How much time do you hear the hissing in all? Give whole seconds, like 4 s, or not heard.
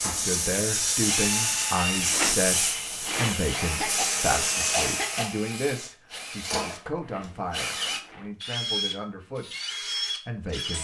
5 s.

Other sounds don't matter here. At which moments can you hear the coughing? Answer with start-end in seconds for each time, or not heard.
3.5-5.3.